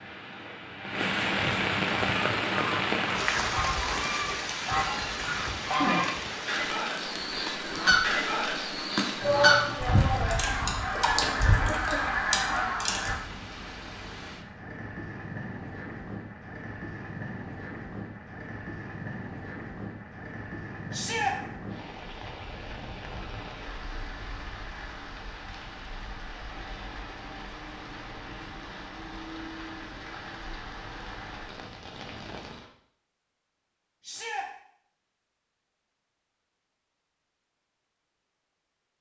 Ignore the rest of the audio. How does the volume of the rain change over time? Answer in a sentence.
The volume of the rain goes down.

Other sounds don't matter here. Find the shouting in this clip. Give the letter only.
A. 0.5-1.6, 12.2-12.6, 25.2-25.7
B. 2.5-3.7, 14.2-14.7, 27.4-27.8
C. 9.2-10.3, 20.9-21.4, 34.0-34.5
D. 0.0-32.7
C.